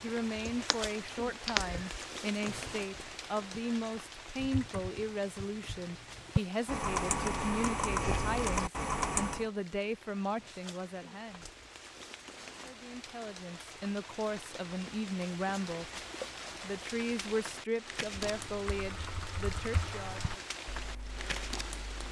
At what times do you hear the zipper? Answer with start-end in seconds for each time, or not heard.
not heard.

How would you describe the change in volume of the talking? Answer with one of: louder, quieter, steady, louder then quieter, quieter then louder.
steady.